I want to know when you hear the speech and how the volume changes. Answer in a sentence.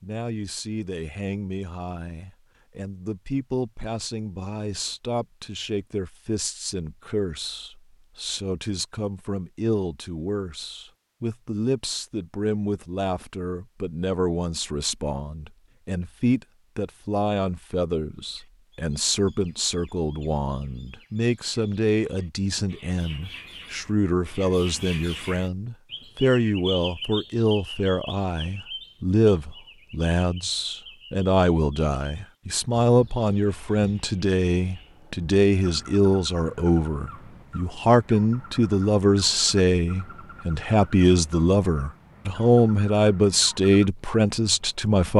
You can hear the speech from 0.0 to 45.1 s, getting louder.